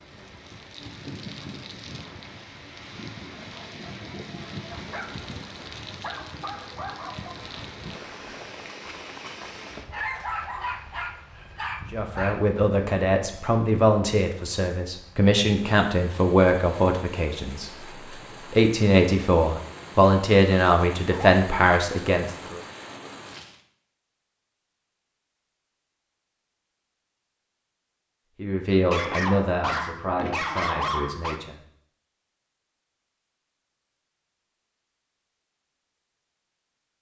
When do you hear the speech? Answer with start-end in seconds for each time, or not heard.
11.9-22.6, 28.4-31.6.